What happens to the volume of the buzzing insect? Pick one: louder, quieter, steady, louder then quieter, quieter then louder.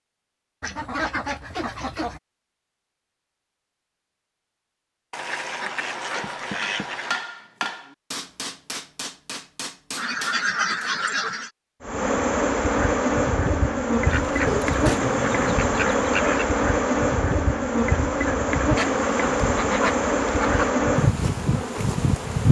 steady.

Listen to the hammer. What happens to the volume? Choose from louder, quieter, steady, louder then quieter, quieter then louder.
quieter.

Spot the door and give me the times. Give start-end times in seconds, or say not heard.
6.2-6.9, 14.4-15.6.